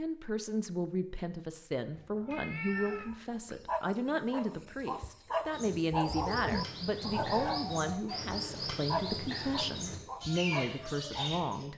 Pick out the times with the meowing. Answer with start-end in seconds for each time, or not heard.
1.9-3.1, 7.0-7.7.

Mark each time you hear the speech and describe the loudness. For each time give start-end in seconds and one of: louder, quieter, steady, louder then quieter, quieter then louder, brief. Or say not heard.
0.0-11.7 steady.